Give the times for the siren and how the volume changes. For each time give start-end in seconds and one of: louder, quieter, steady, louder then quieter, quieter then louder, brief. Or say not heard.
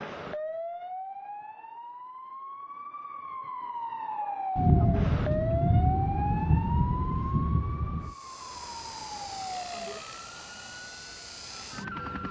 0.0-12.2 louder then quieter.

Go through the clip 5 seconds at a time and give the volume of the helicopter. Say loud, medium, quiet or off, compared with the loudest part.
off, loud, loud.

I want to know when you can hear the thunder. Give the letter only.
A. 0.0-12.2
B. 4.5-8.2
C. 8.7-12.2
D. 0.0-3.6
B.